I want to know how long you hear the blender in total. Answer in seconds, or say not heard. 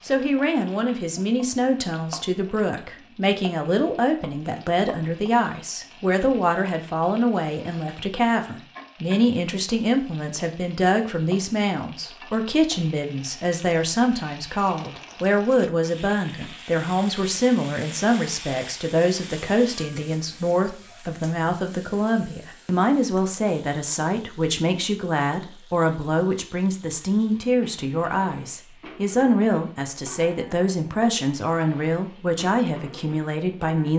not heard.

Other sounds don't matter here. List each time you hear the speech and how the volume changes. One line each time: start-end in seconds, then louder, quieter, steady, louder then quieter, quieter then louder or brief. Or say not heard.
0.1-33.9 steady.